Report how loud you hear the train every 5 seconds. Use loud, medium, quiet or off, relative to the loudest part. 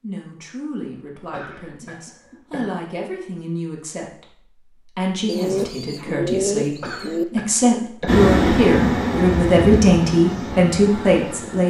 off, loud, medium.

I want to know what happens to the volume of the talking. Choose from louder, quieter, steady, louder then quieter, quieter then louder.
louder.